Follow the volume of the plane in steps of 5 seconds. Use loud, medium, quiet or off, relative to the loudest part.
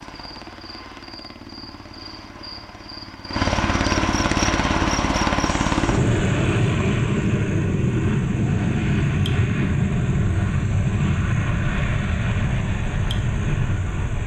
medium, loud, loud.